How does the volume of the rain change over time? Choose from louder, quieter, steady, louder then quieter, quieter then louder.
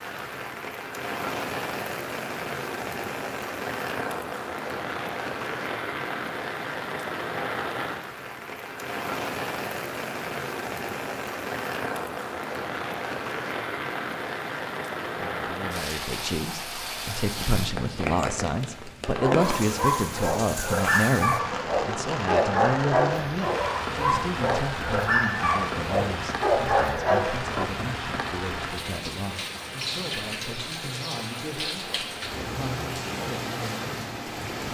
steady.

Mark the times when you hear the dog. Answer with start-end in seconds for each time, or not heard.
19.1-27.6.